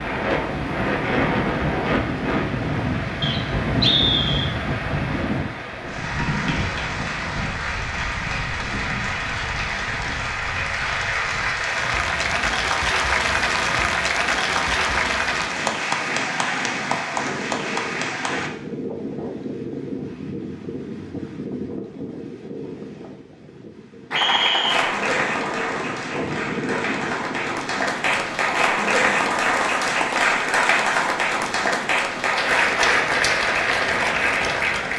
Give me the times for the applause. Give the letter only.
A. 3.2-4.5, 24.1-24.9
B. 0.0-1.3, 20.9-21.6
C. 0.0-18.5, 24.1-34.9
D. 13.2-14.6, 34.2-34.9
C.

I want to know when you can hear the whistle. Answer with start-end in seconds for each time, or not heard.
3.2-4.5, 24.1-24.9.